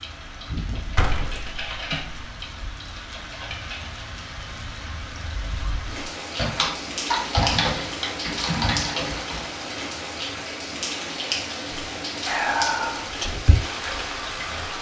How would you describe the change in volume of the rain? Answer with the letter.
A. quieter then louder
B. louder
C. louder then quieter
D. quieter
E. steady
B.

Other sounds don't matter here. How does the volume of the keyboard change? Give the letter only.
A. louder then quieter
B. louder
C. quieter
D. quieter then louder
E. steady
B.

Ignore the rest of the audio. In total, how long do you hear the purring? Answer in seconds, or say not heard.
not heard.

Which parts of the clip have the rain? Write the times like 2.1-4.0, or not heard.
0.0-14.7.